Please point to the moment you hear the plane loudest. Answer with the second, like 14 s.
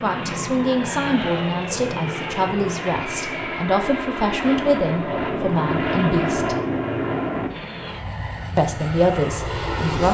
6 s.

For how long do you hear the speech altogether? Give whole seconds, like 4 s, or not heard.
8 s.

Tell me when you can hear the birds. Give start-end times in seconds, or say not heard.
not heard.